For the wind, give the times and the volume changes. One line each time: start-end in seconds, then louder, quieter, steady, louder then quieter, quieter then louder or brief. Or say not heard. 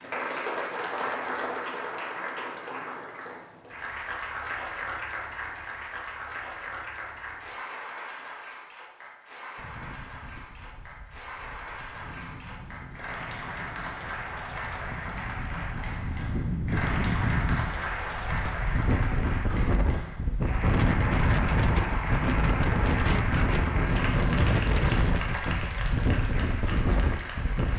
9.6-27.7 louder.